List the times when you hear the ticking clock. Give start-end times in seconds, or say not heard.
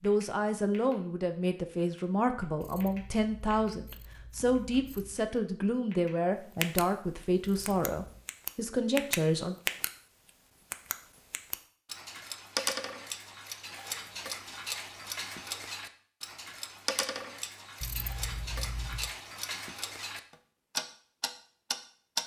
0.0-0.9, 1.8-3.8, 4.5-6.8, 7.7-9.9, 10.7-22.2.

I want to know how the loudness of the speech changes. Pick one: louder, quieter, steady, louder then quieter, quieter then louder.
steady.